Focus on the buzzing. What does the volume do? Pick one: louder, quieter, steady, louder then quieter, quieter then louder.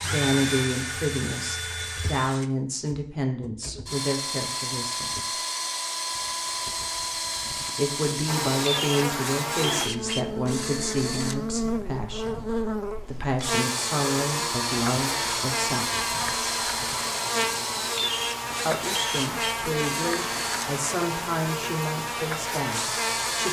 steady.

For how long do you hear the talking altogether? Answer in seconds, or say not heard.
19 s.